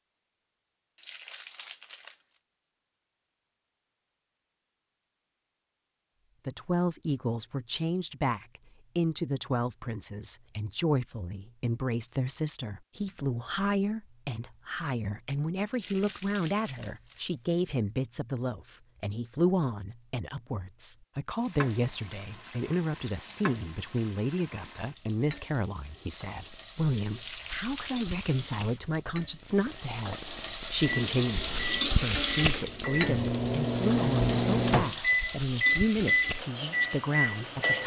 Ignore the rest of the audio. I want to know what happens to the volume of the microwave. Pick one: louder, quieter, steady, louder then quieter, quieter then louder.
louder.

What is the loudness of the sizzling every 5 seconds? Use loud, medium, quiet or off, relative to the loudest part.
off, off, off, off, quiet, quiet, loud, medium.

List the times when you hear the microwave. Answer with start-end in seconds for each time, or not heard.
30.3-37.8.